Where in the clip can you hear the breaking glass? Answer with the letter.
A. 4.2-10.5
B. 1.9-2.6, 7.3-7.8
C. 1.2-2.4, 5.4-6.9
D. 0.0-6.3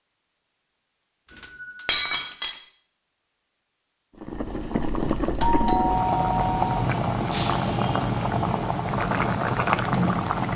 B.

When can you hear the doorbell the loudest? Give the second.
6 s.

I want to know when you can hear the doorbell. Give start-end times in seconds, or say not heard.
1.2-2.4, 5.4-6.9.